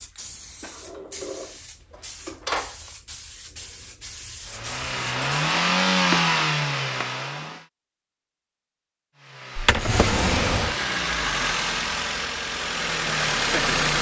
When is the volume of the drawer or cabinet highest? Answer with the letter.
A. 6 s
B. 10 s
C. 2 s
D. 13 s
B.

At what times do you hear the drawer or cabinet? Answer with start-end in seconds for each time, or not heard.
0.6-2.9, 5.2-6.2, 7.0-7.6, 9.6-10.8.